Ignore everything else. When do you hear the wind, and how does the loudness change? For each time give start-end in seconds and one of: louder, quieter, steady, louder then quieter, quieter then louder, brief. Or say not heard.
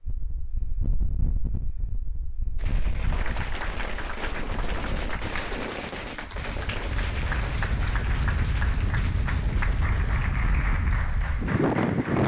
0.0-12.2 louder.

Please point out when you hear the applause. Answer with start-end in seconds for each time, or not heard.
3.0-12.2.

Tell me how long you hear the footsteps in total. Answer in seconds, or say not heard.
not heard.